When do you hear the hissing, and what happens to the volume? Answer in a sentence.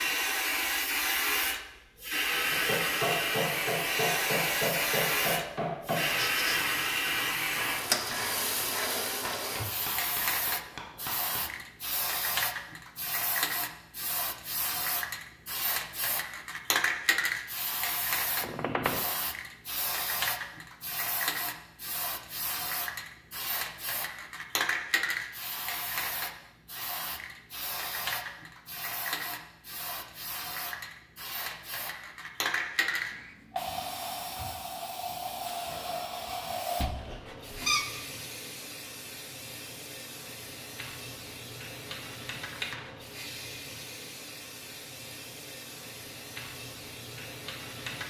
The hissing can be heard from 0.0 to 48.0 s, getting quieter.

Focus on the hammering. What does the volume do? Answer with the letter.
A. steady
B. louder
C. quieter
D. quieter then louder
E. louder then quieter
C.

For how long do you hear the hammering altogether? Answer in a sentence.
The hammering can be heard for 9 seconds in total.